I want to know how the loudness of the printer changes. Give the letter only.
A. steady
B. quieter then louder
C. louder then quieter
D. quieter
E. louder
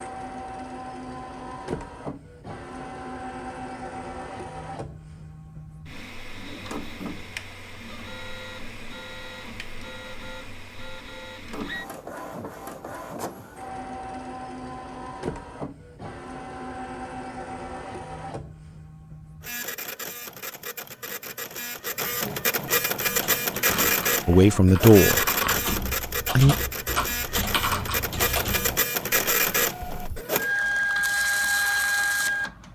E.